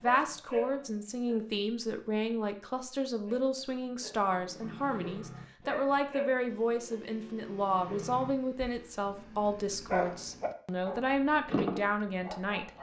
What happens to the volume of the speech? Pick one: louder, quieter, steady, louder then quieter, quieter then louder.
steady.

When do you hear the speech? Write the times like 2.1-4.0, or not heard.
0.0-12.7.